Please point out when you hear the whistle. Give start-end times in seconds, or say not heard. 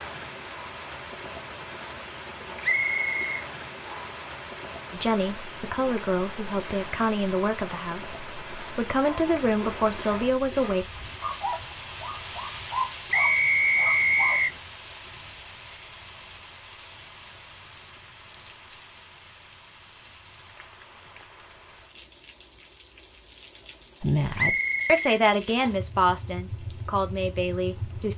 2.6-4.2, 13.1-14.6, 24.4-25.8.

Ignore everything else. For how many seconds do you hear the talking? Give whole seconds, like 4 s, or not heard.
10 s.